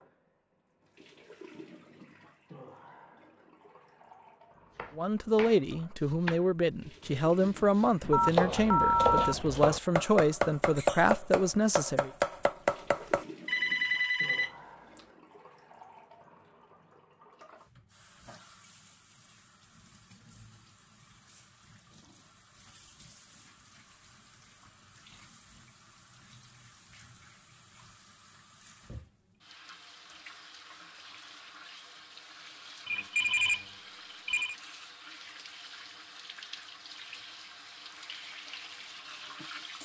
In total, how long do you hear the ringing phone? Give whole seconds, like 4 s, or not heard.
4 s.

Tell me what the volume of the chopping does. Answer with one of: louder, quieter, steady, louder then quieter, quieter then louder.
quieter then louder.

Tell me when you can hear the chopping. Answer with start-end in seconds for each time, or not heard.
4.7-13.2.